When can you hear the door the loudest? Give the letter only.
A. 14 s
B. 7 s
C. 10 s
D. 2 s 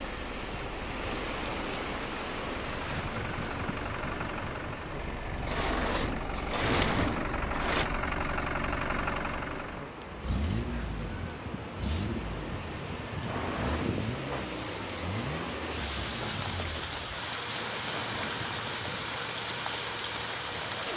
B.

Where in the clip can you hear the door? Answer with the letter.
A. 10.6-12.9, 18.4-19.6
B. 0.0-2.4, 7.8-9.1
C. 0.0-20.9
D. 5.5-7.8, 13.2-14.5
D.